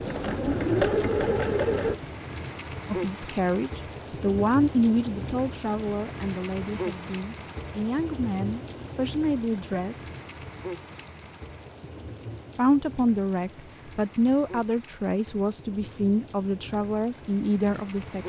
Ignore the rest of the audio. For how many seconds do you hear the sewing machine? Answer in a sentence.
You can hear the sewing machine for 2 seconds altogether.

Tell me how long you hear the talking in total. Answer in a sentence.
You can hear the talking for 13 seconds altogether.